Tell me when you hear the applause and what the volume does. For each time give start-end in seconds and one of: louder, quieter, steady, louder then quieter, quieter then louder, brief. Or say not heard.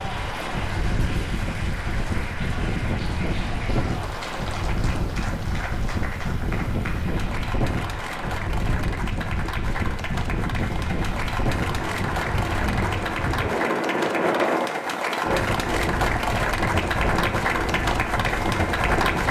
0.0-19.2 louder.